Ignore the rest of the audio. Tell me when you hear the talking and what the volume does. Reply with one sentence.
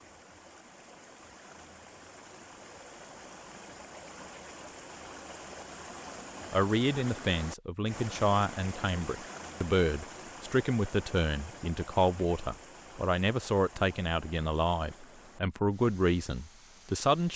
You can hear the talking from 6.5 to 17.3 s, at a steady volume.